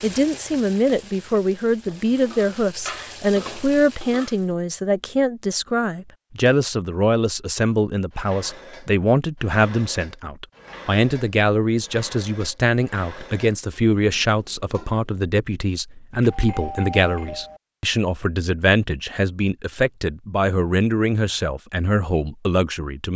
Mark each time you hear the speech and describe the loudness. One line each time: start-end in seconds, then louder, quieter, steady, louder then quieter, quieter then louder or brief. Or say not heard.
0.0-23.1 steady.